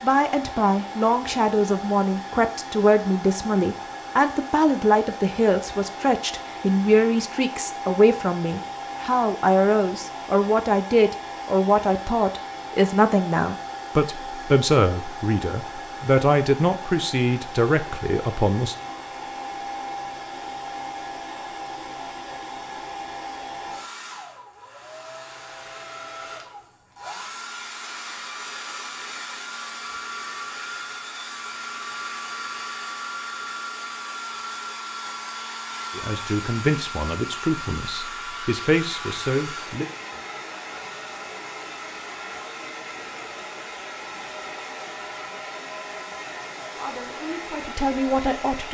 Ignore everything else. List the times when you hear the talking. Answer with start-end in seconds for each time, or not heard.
0.0-18.8, 35.9-39.9, 46.8-48.6.